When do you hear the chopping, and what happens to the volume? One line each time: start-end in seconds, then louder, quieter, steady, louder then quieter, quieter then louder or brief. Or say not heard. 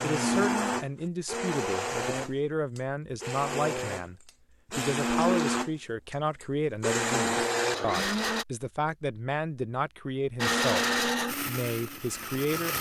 not heard.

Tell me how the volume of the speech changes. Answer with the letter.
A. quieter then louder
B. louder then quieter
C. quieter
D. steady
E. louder
D.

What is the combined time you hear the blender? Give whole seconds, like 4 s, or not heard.
11 s.